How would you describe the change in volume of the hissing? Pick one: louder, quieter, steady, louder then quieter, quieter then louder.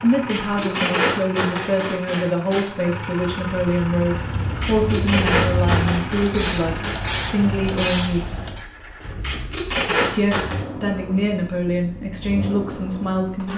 louder.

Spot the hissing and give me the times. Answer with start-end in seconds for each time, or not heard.
3.3-8.7.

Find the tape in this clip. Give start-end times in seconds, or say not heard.
0.2-2.6, 4.6-7.0, 9.2-10.6.